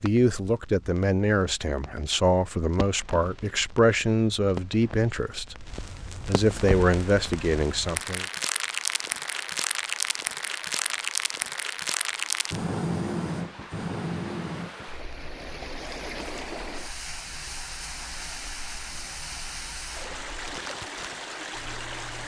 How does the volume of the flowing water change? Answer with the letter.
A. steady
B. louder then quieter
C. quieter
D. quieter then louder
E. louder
E.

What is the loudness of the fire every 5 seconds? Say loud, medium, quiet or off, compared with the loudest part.
quiet, loud, loud, quiet, quiet.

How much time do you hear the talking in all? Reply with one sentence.
The talking can be heard for 8 seconds in total.